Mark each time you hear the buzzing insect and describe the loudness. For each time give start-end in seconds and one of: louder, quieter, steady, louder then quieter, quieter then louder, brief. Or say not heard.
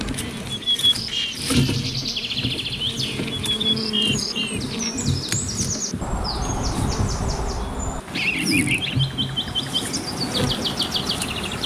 0.0-11.6 steady.